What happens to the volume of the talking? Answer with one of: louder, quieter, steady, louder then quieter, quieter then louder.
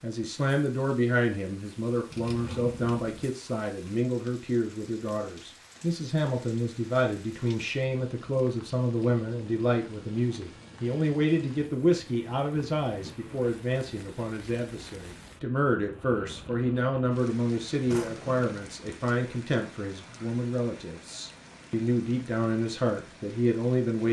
steady.